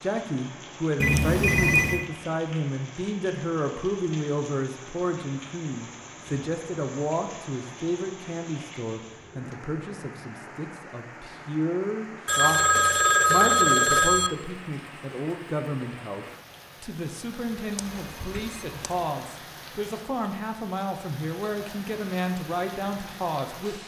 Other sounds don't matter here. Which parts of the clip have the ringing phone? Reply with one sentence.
You can hear the ringing phone from 1.0 to 2.0 s, from 12.2 to 14.3 s and from 17.8 to 19.1 s.